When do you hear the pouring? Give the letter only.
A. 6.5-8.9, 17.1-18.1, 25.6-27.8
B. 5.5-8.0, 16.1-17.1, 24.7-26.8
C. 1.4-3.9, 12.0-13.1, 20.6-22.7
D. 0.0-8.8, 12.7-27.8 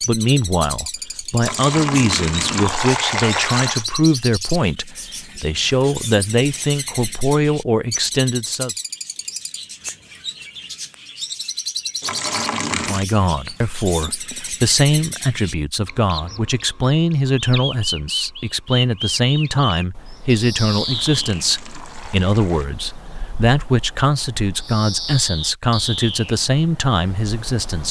C.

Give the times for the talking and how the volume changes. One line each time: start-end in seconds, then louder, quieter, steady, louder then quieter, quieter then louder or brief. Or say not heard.
0.0-8.8 steady
12.7-27.8 steady.